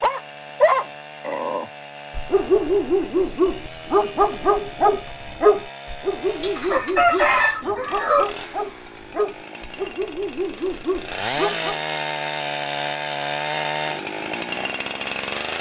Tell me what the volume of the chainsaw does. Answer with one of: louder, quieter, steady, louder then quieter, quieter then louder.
louder.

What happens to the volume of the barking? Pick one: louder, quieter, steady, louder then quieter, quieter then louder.
quieter.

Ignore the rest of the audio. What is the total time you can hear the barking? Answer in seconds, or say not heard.
12 s.